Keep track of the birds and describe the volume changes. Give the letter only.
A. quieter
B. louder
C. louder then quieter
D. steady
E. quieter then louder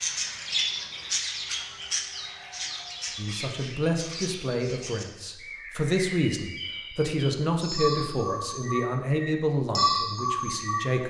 E.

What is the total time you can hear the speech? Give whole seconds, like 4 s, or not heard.
8 s.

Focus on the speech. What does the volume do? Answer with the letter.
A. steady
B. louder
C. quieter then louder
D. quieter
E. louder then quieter
A.